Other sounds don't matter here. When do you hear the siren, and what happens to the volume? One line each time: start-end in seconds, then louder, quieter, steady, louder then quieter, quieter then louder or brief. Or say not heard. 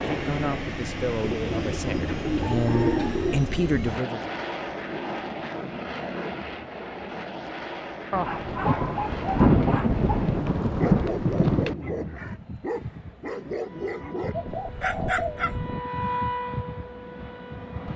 13.6-17.9 louder then quieter.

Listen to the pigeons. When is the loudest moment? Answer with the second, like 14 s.
3 s.